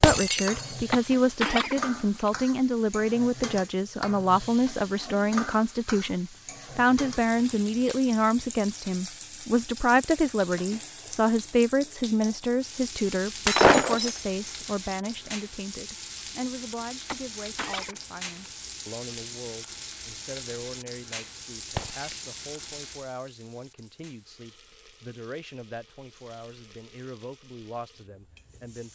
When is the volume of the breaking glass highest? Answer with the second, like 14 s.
14 s.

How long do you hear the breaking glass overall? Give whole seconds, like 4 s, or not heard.
2 s.